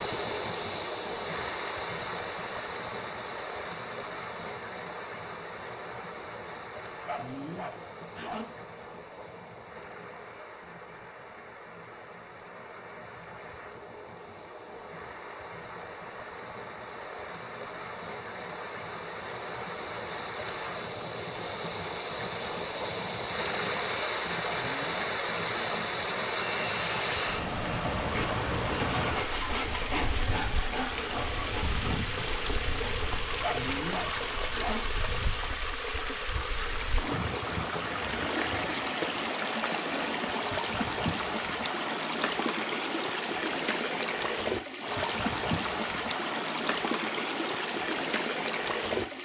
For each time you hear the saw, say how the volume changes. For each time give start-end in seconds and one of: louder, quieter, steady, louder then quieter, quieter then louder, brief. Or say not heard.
26.6-31.7 steady.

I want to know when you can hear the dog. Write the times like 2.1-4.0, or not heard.
7.0-8.4, 24.4-25.8, 33.4-34.8.